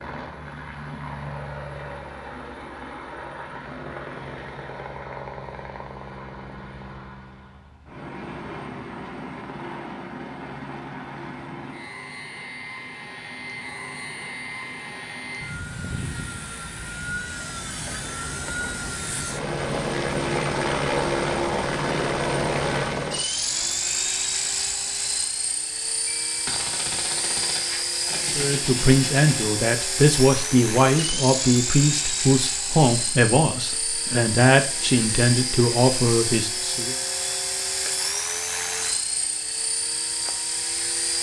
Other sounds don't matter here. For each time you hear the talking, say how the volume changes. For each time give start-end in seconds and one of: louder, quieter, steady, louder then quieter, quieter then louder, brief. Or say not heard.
28.4-37.0 steady.